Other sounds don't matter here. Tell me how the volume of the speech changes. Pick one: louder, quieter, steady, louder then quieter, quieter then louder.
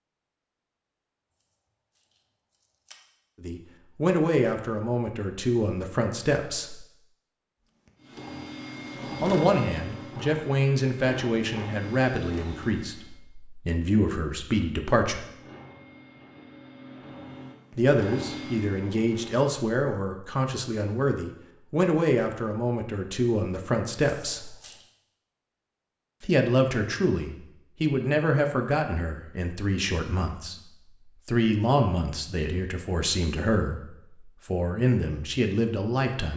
steady.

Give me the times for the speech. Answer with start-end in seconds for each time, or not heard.
3.4-6.8, 9.2-15.2, 17.8-24.6, 26.2-36.3.